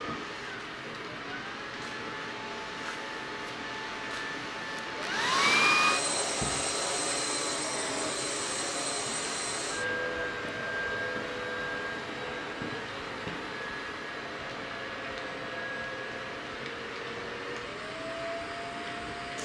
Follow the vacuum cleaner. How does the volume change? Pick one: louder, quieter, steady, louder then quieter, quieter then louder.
louder then quieter.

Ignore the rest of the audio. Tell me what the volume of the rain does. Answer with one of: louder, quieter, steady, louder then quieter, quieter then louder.
steady.